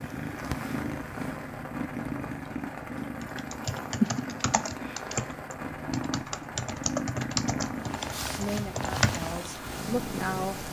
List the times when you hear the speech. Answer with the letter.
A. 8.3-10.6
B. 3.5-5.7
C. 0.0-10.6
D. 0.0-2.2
A.